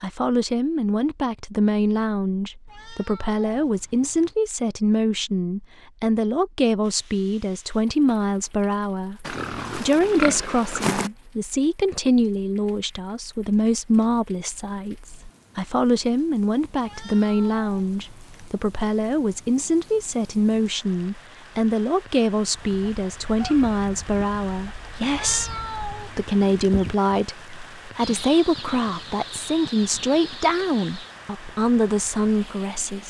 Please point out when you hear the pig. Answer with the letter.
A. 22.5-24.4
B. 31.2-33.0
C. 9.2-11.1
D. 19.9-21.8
C.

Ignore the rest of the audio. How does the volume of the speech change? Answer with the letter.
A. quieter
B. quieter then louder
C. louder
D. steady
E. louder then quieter
D.